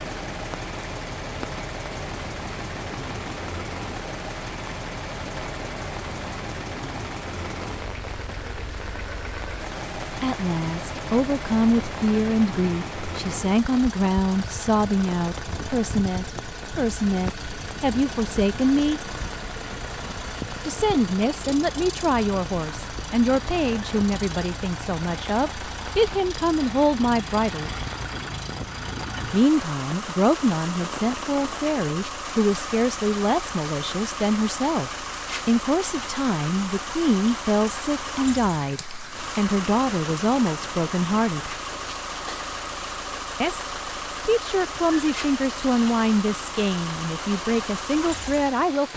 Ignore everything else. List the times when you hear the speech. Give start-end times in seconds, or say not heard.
10.2-19.0, 20.6-27.7, 29.3-41.5, 43.4-48.9.